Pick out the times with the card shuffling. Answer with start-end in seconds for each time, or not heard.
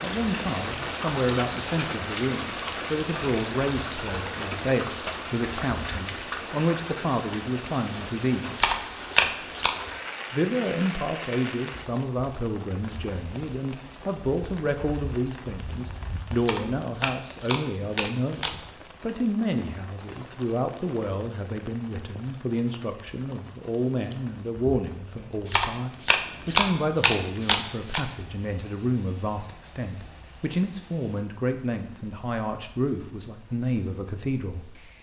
8.6-9.8, 16.4-18.6, 25.4-28.1.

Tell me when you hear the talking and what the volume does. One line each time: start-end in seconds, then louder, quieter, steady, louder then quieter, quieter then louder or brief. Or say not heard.
0.0-8.7 steady
10.3-34.6 steady.